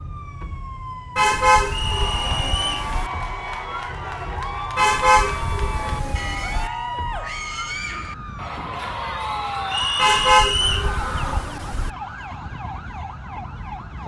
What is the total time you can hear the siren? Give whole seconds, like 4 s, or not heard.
14 s.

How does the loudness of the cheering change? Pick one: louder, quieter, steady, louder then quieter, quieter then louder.
steady.